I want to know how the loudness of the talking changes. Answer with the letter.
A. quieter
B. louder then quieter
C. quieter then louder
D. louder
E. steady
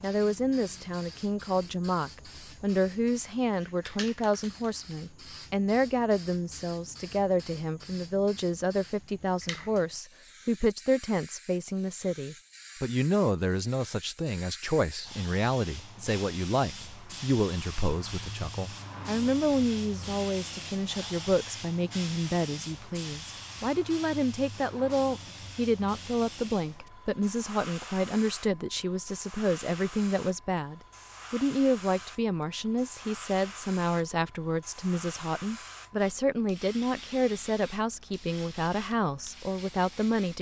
E.